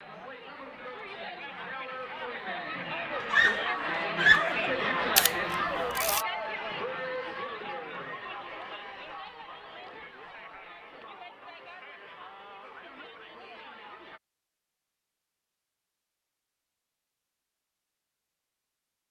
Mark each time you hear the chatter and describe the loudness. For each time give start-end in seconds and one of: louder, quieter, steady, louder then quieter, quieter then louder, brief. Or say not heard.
0.0-14.2 louder then quieter.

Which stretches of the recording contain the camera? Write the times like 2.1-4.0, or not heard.
5.2-6.2.